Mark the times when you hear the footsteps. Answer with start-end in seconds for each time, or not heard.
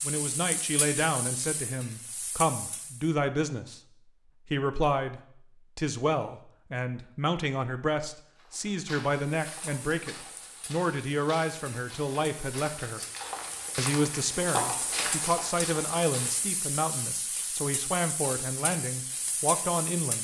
8.3-16.4.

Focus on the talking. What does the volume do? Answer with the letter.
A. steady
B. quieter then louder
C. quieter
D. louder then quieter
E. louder
A.